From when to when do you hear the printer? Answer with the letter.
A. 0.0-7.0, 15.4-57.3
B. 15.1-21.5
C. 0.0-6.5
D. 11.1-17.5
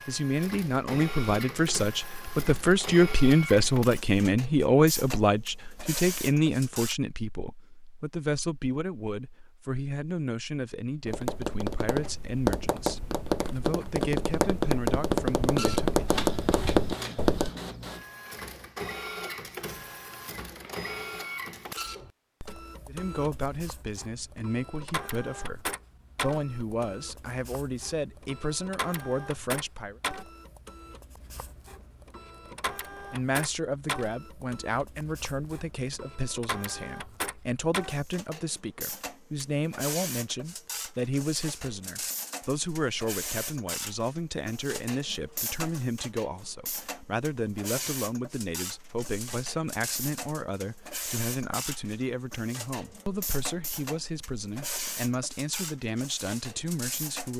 A.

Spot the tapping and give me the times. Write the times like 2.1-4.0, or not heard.
11.1-17.5.